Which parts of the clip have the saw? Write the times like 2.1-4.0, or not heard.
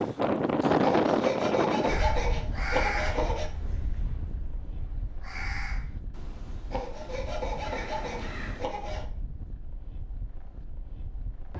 0.8-3.5, 6.7-9.1.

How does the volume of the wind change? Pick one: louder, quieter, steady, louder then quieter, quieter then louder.
quieter.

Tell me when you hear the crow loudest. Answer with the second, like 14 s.
3 s.